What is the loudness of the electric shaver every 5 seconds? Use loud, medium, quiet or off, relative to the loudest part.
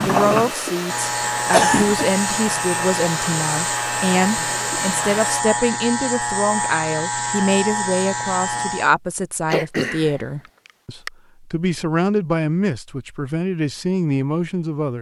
loud, loud, off.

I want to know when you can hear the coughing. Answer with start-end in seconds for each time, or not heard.
1.5-2.1, 9.5-11.1.